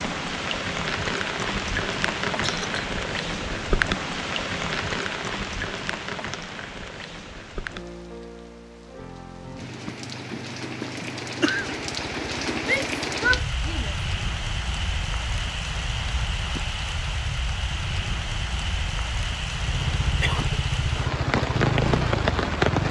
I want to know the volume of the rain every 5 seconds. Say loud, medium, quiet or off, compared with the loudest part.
loud, medium, medium, medium, loud.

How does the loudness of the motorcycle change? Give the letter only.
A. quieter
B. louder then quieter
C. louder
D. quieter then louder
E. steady
C.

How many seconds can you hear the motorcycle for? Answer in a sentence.
You can hear the motorcycle for 13 seconds altogether.